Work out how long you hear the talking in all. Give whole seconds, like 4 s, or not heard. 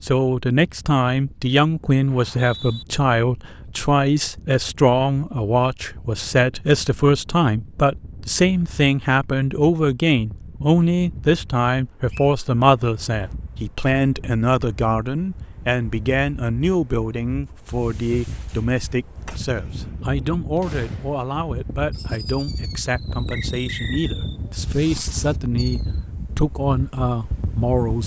28 s.